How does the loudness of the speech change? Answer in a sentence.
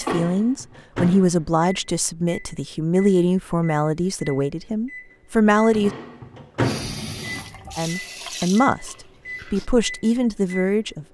The volume of the speech stays about the same.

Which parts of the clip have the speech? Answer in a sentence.
The speech can be heard from 0.0 to 5.9 s and from 7.8 to 11.1 s.